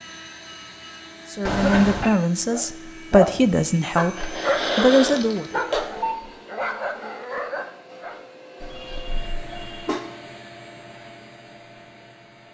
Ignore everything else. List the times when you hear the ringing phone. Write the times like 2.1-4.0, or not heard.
1.4-2.1, 5.8-6.3, 8.7-9.9.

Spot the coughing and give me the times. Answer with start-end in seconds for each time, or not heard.
1.6-2.2, 4.2-5.8, 8.6-10.0.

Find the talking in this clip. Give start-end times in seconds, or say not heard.
1.3-5.5.